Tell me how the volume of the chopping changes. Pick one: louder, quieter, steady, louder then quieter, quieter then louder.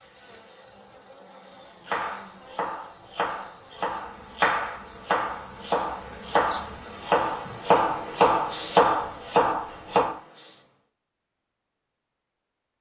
louder.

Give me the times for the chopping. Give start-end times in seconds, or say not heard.
1.8-10.2.